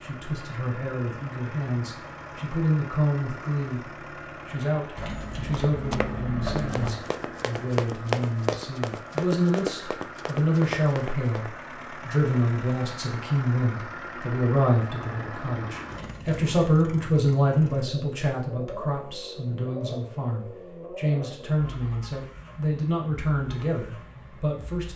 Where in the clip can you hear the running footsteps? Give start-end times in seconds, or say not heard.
5.5-11.5.